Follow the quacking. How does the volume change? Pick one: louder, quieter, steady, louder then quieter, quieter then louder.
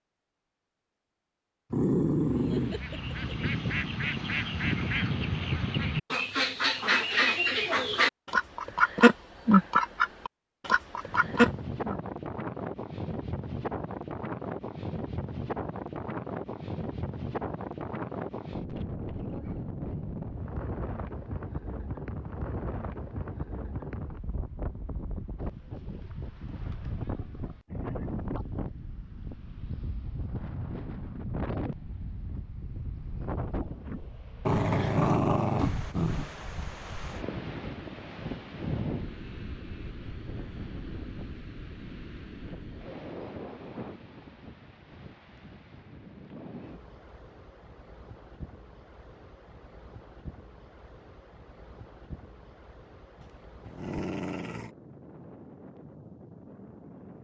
louder.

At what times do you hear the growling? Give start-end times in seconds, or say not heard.
1.7-3.4, 34.5-36.3, 53.2-54.7.